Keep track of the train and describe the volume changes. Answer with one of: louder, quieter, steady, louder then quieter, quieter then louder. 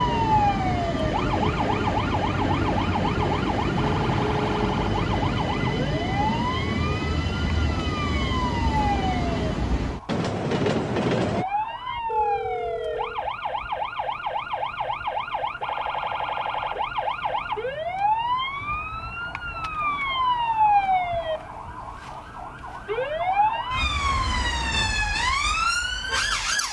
steady.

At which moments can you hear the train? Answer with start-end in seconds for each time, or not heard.
0.0-11.4.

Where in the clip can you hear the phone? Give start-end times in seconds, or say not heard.
12.1-13.2.